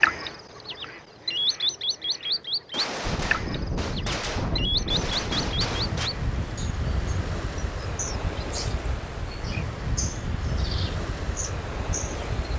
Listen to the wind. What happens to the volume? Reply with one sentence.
The volume of the wind stays about the same.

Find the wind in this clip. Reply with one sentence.
The wind can be heard from 3.0 to 12.5 s.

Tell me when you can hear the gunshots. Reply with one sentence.
You can hear the gunshots from 2.7 to 6.1 s.